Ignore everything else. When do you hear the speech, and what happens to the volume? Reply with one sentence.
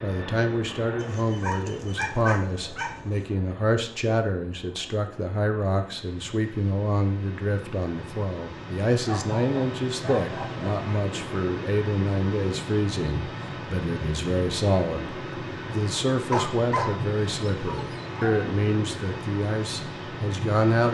You can hear the speech from 0.0 to 20.8 s, at a steady volume.